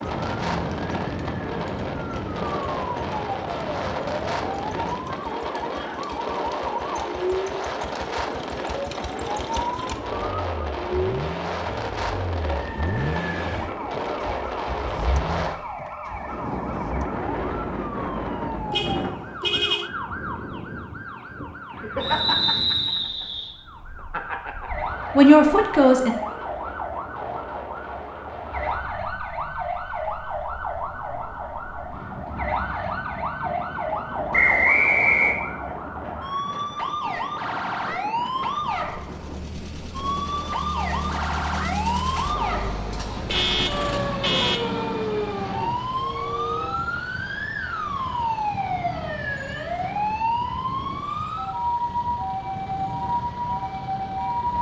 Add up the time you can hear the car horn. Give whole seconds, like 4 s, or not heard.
3 s.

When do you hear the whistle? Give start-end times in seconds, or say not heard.
22.0-23.5, 34.3-35.4.